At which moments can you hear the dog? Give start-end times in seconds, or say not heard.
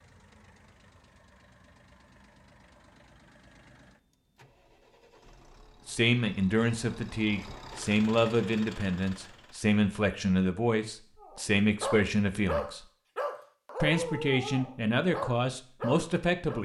11.2-16.6.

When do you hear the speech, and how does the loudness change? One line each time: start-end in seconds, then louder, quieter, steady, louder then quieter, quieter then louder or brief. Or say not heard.
5.8-12.8 steady
13.8-16.6 brief.